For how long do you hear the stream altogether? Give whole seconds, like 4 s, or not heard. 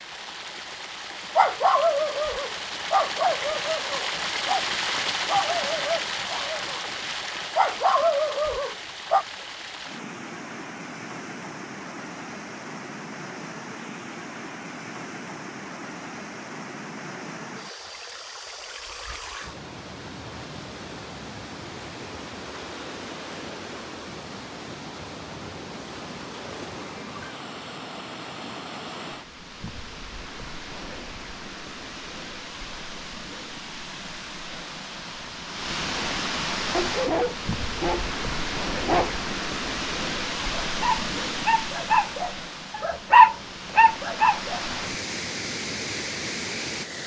47 s.